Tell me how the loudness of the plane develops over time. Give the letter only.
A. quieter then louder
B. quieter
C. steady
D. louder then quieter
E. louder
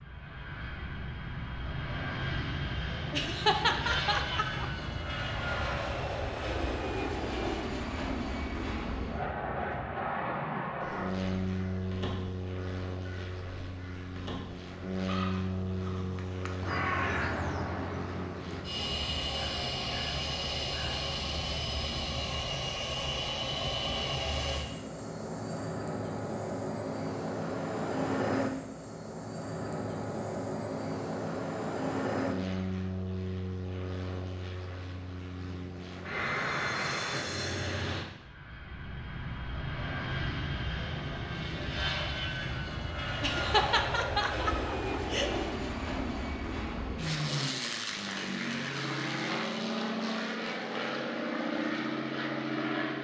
C.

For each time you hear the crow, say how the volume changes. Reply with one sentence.
The crow can be heard from 10.8 to 21.1 s, getting louder then quieter.